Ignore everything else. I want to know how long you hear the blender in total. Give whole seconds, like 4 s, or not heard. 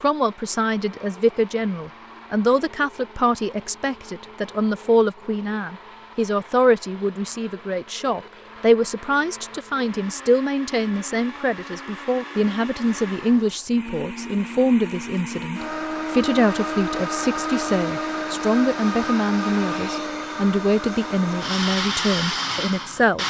23 s.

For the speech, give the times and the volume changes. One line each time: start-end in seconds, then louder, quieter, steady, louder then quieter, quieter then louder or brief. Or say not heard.
0.0-23.2 steady.